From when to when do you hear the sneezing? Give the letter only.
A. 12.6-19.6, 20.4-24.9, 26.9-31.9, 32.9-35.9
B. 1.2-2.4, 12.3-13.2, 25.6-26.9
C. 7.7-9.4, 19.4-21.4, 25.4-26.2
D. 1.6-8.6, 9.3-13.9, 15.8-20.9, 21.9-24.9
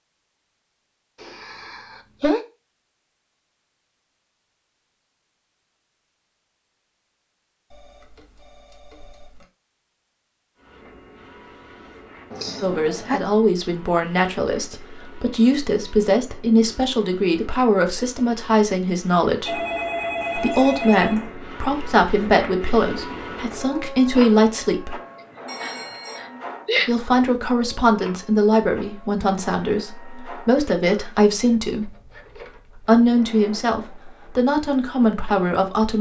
B.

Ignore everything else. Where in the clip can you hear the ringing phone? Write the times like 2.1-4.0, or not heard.
7.7-9.4, 19.4-21.4, 25.4-26.2.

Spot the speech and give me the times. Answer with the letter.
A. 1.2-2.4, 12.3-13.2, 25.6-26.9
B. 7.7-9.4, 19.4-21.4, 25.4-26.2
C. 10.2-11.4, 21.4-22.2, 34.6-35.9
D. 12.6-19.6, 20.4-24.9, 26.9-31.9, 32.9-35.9
D.